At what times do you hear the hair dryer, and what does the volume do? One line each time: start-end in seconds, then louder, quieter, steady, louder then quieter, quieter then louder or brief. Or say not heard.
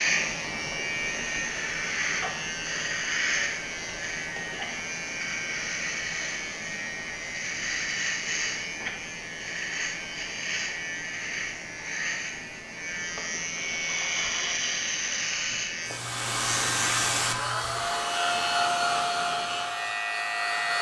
15.8-20.7 quieter.